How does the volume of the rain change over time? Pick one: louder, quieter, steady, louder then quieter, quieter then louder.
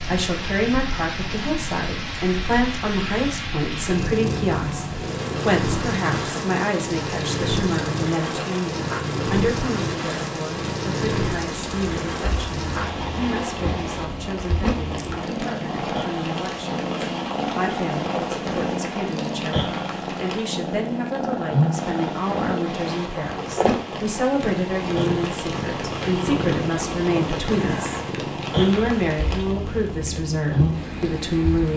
steady.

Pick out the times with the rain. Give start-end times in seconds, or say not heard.
0.0-31.7.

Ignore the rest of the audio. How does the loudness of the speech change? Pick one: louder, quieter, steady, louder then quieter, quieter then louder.
quieter then louder.